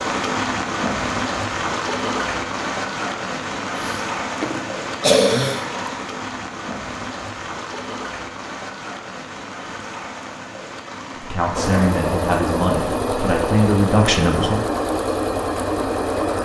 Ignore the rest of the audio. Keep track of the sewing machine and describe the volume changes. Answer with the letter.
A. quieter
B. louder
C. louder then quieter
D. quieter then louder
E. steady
E.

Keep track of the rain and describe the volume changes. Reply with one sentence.
The loudness of the rain goes down.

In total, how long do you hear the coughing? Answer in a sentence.
The coughing can be heard for 2 seconds in total.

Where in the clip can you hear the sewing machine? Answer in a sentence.
The sewing machine can be heard from 11.5 to 16.4 s.